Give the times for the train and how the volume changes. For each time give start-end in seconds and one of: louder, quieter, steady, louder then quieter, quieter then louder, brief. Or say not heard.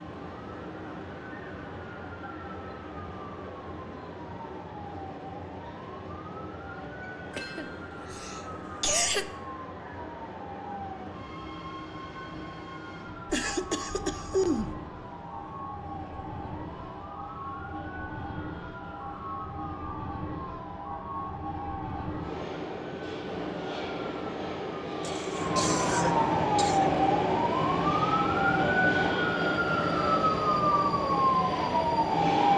0.0-32.5 louder.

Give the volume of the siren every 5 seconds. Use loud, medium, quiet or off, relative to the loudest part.
quiet, quiet, quiet, quiet, quiet, loud, loud.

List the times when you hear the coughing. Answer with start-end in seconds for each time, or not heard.
7.3-9.2, 13.2-14.8, 25.0-26.9.